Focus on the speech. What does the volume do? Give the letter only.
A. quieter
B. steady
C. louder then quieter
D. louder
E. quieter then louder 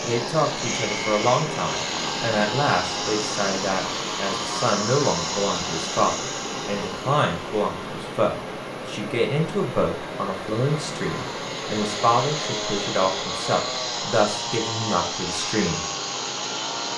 B.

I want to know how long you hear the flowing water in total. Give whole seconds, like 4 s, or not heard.
17 s.